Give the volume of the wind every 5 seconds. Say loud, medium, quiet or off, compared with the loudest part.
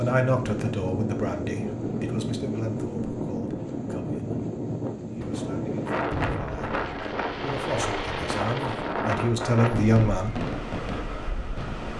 loud, loud, medium.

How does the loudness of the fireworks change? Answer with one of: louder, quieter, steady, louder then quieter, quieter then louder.
steady.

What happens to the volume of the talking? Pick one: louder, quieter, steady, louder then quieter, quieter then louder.
quieter then louder.